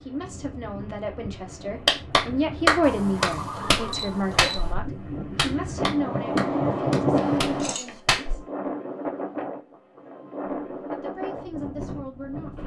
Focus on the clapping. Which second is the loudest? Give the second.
3 s.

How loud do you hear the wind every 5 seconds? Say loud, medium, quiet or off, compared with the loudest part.
quiet, loud, medium.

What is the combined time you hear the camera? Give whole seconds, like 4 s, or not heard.
3 s.